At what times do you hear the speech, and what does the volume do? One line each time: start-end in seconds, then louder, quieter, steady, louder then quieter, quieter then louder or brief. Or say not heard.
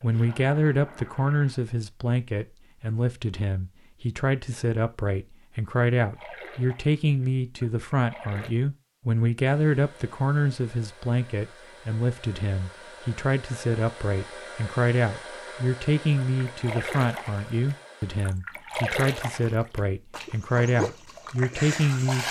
0.0-22.2 steady.